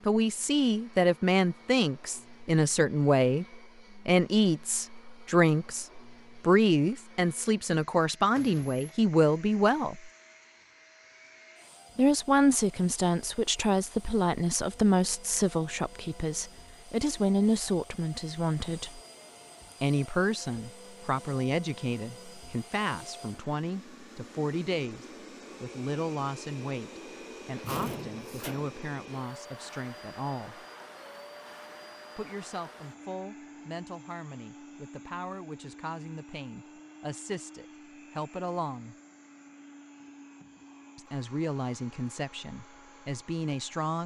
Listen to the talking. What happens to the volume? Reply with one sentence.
The volume of the talking goes down.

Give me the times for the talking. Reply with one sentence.
The talking can be heard from 0.1 to 10.1 s, from 11.9 to 19.0 s, from 19.8 to 30.6 s, from 32.1 to 39.0 s and from 41.0 to 44.0 s.